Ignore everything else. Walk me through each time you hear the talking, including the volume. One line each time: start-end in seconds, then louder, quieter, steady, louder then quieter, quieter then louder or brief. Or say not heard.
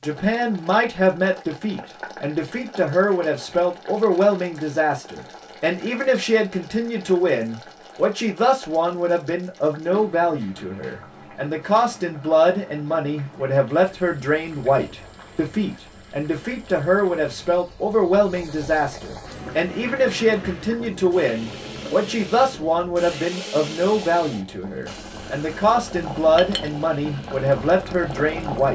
0.0-28.7 steady.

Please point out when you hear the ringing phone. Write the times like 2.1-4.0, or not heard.
not heard.